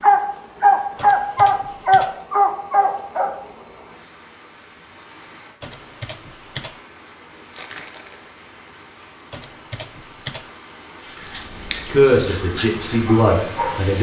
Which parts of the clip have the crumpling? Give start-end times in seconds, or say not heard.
7.5-8.2.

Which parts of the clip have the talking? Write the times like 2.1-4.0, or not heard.
11.9-13.9.